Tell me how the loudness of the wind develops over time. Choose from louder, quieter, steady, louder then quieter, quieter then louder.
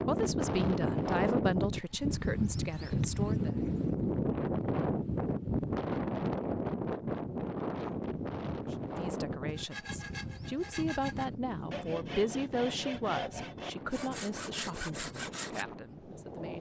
quieter.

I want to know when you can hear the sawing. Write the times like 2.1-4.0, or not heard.
9.4-15.7.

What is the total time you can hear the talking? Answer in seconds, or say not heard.
11 s.